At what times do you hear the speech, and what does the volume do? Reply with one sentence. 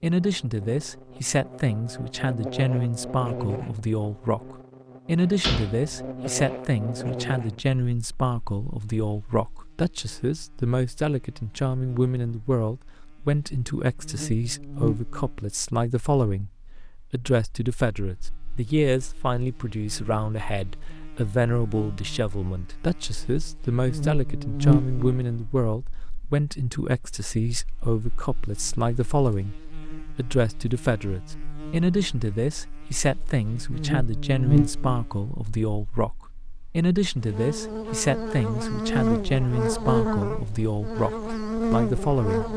The speech can be heard from 0.0 to 16.5 s, at a steady volume; from 17.1 to 29.6 s, at a steady volume; and from 30.1 to 42.5 s, at a steady volume.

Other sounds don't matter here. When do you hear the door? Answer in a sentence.
The door can be heard from 5.4 to 6.5 s.